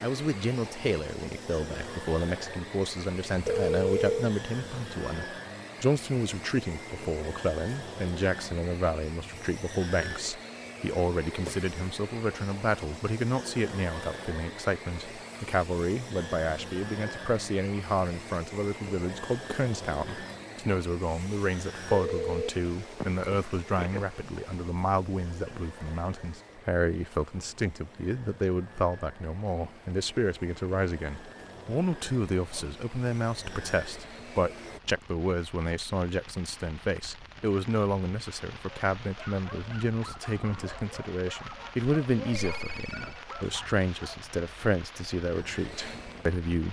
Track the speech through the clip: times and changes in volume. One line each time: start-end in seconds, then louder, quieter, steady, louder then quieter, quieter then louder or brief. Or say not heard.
0.0-46.6 steady.